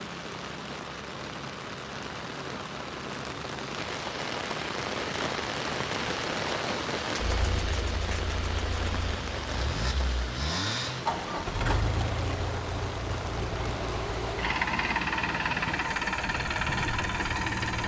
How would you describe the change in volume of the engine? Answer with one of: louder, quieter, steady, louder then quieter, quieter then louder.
louder.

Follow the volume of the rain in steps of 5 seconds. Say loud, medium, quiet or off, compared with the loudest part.
loud, loud, medium, medium.